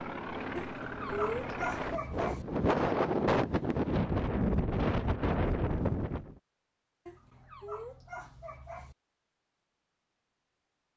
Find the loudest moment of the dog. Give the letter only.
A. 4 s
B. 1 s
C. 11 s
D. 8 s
B.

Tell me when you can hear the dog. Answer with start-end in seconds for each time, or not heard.
0.6-2.5, 7.0-8.9.